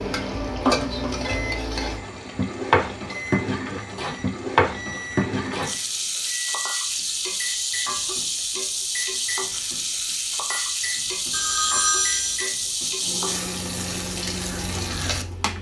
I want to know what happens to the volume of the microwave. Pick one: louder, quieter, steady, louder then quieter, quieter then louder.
steady.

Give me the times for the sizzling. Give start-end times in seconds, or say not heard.
0.0-15.5.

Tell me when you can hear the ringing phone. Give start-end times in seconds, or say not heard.
11.3-12.5.